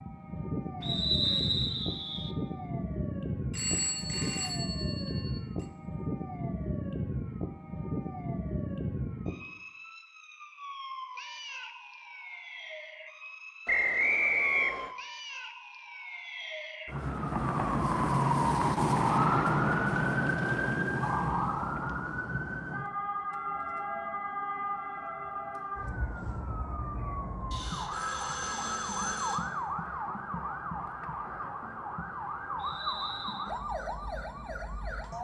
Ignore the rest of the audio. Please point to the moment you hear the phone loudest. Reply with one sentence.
The loudest moment of the phone is at 4 seconds.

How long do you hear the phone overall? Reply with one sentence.
The phone can be heard for 4 seconds in total.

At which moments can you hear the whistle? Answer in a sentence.
You can hear the whistle from 0.8 to 2.4 s, from 13.7 to 14.9 s and from 32.5 to 33.5 s.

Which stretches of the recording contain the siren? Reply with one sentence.
You can hear the siren from 0.0 to 35.1 s.